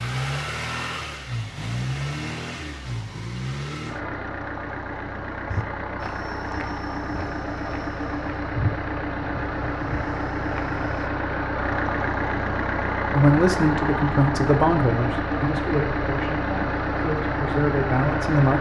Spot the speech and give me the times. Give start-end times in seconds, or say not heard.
13.1-18.5.